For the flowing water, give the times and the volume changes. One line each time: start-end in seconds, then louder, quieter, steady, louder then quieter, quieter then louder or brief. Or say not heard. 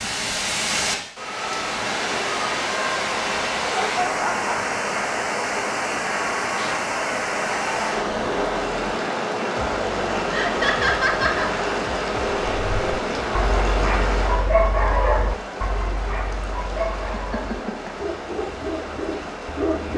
0.0-19.9 quieter.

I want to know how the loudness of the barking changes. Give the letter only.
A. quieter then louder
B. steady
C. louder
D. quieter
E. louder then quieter
D.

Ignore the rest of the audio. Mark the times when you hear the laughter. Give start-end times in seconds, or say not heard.
3.7-4.5, 10.3-11.5, 17.1-17.9.